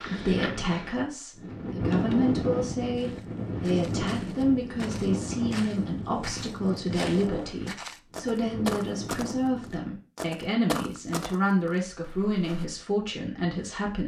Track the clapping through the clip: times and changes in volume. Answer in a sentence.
You can't hear the clapping here.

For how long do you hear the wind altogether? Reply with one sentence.
You can hear the wind for 10 seconds altogether.